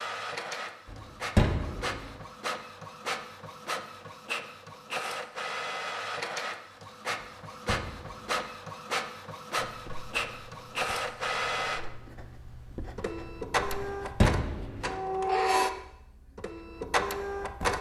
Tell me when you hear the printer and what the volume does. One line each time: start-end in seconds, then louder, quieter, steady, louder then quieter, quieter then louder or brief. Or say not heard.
0.0-17.7 louder.